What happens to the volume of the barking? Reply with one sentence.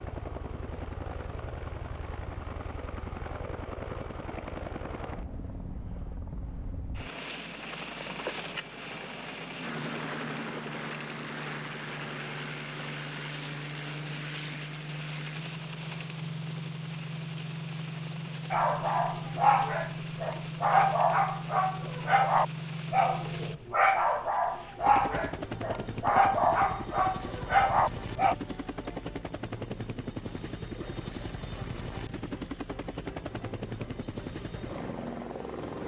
The loudness of the barking stays about the same.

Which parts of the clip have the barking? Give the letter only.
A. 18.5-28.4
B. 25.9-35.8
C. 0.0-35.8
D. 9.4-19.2
A.